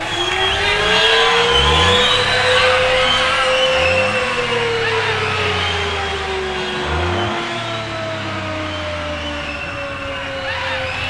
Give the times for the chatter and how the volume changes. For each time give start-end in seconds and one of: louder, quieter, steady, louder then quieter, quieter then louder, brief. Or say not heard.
0.0-11.0 quieter.